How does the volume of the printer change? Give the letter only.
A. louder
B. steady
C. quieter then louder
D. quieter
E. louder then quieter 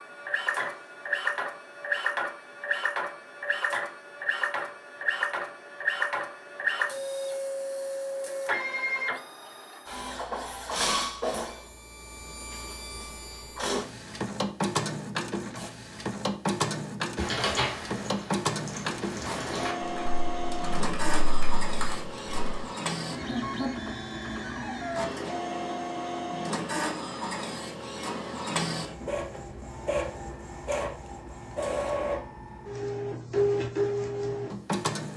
B.